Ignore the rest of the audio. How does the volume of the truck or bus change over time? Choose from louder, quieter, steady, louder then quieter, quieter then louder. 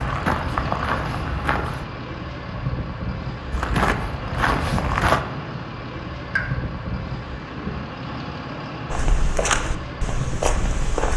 steady.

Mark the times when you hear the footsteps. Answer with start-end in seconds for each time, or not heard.
0.0-1.9, 3.5-5.2, 8.9-11.1.